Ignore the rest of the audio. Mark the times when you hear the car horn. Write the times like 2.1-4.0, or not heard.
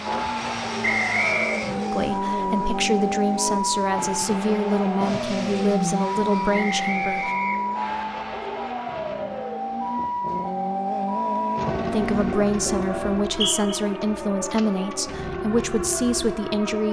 not heard.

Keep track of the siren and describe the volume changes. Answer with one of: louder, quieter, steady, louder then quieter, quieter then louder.
steady.